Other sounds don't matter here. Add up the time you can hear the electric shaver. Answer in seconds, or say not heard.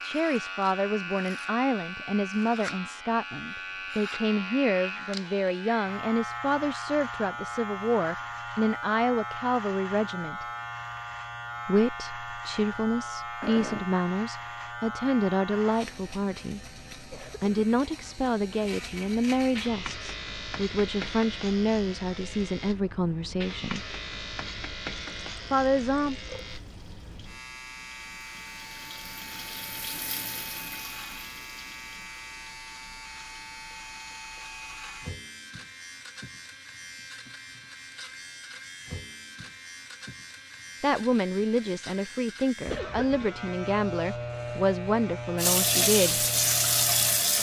47 s.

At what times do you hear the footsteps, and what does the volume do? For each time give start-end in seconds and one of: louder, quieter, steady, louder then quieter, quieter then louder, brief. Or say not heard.
not heard.